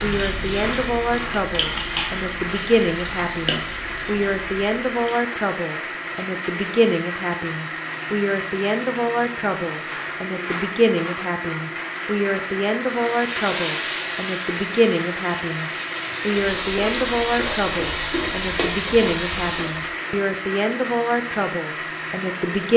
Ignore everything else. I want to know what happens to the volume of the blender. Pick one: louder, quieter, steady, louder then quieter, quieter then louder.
steady.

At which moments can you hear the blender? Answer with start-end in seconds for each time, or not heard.
0.0-22.7.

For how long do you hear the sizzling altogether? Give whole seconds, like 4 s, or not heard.
12 s.